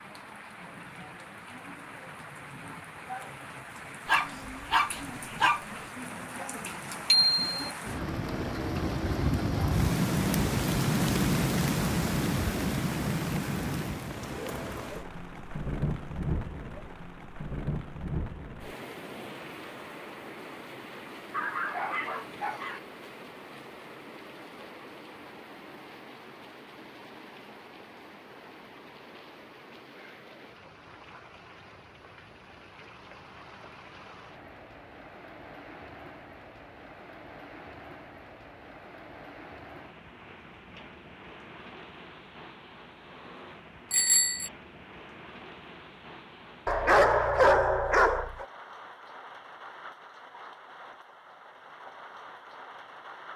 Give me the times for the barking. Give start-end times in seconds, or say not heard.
4.0-5.7, 21.3-22.8, 46.6-48.5.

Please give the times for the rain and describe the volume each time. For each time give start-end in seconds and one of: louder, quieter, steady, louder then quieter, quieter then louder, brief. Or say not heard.
0.0-53.3 quieter.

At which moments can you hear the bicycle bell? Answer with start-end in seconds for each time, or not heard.
7.1-7.5, 43.9-44.5.